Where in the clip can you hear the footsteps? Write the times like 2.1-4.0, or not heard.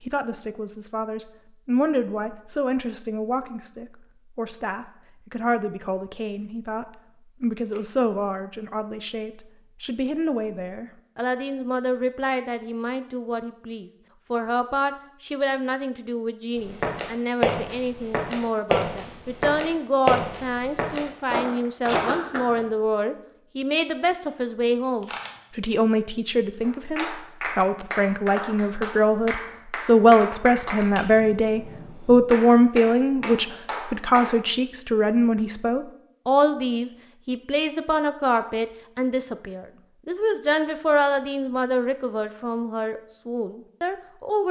16.6-22.6.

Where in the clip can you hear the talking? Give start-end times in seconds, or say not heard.
0.0-44.4.